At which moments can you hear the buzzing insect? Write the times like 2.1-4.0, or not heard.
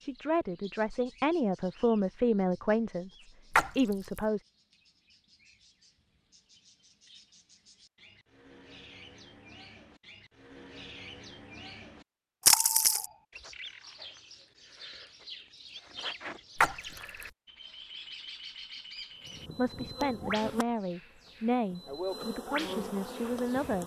19.2-23.8.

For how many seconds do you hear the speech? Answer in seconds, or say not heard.
9 s.